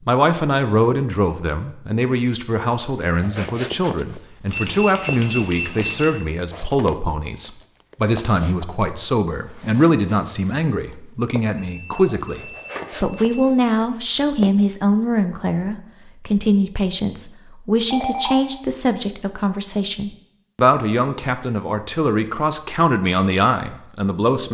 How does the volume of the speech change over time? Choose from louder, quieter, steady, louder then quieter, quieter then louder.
steady.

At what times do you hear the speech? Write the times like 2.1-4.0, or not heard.
0.1-24.4.